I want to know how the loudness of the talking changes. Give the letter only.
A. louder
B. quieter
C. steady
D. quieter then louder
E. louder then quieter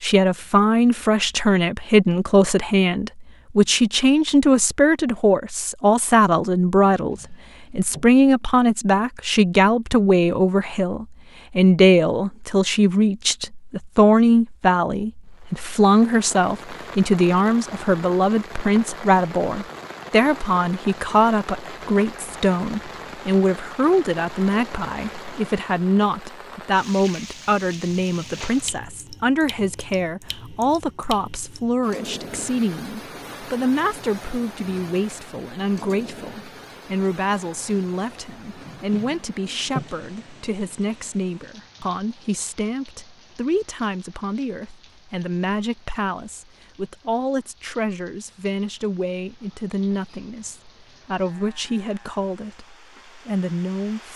B.